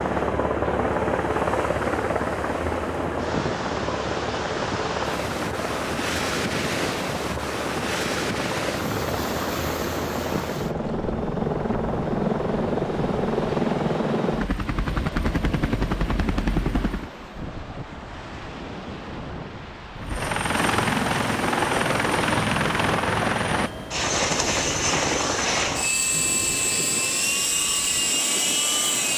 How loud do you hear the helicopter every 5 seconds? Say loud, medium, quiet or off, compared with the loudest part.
loud, medium, loud, loud, loud, loud.